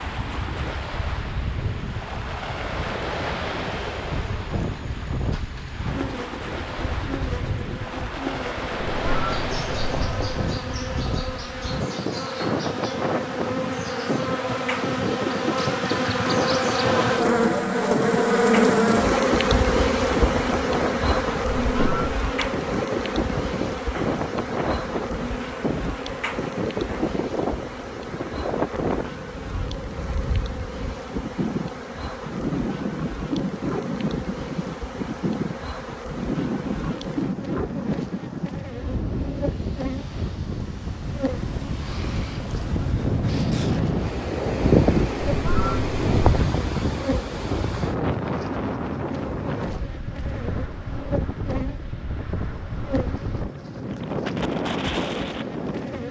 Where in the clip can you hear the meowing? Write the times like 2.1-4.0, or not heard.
8.8-10.4, 21.5-22.2, 45.2-46.2.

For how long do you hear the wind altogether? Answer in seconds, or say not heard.
56 s.